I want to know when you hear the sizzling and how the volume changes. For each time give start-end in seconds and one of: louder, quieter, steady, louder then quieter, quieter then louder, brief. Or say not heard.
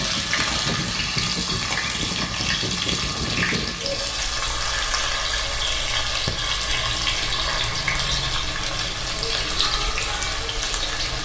0.0-11.2 steady.